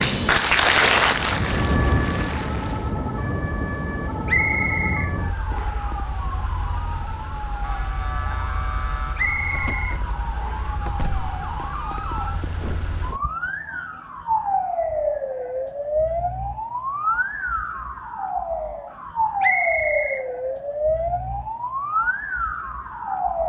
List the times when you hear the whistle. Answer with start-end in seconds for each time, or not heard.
4.2-5.8, 9.2-10.8, 19.4-20.2.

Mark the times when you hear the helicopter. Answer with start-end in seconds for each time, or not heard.
not heard.